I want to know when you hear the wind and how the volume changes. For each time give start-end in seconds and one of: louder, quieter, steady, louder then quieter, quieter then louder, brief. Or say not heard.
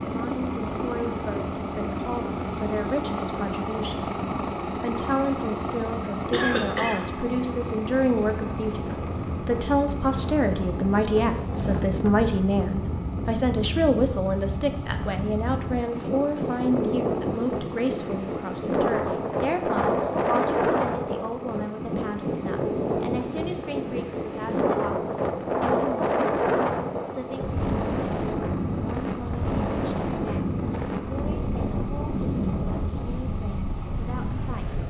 0.1-34.8 louder.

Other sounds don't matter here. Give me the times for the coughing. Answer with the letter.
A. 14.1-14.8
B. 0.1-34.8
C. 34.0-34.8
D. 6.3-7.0
D.